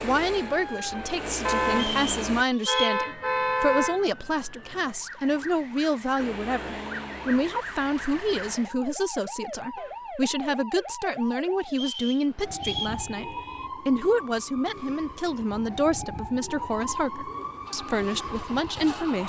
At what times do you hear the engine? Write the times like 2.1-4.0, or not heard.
0.0-2.5, 6.2-8.6, 17.6-19.2.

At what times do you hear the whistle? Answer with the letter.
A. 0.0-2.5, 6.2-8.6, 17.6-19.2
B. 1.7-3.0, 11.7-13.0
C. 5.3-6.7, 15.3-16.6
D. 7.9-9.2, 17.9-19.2
B.